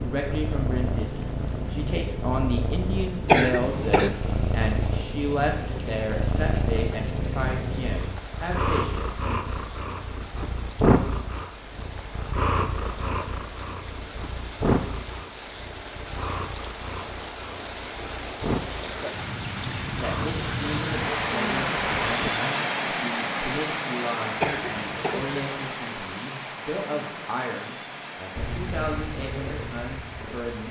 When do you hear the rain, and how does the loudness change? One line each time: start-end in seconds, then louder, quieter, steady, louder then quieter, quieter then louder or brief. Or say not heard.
0.0-30.6 louder then quieter.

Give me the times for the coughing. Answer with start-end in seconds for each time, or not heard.
3.2-4.1, 24.4-25.4.